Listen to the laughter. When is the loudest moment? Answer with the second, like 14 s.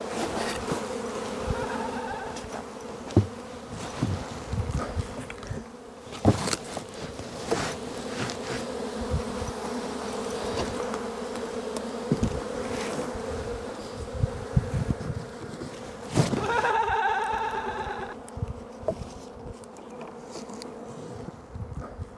17 s.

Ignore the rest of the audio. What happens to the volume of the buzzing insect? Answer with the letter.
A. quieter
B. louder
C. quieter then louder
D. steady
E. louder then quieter
A.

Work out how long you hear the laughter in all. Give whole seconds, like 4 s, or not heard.
3 s.